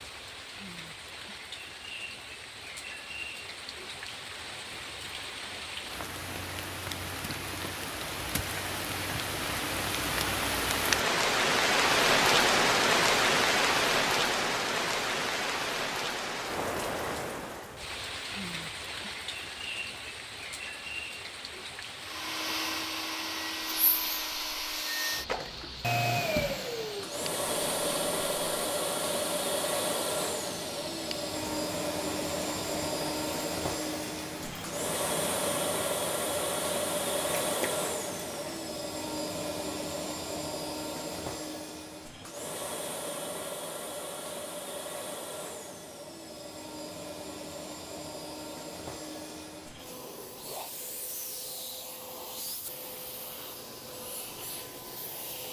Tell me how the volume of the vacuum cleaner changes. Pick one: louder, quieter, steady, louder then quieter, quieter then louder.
quieter.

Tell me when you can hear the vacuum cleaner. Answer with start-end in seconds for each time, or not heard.
21.9-55.4.